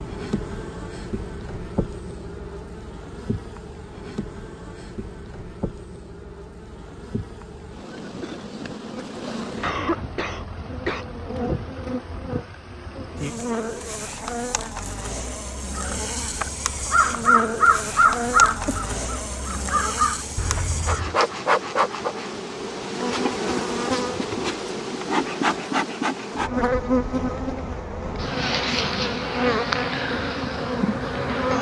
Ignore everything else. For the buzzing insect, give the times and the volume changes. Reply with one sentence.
You can hear the buzzing insect from 0.0 to 31.5 s, getting louder.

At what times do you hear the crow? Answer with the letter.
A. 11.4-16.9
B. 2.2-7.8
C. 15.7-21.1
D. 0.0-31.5
C.